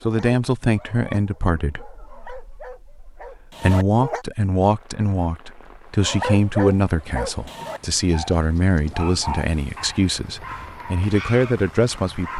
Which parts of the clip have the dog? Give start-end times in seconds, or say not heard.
0.0-4.2, 6.0-12.3.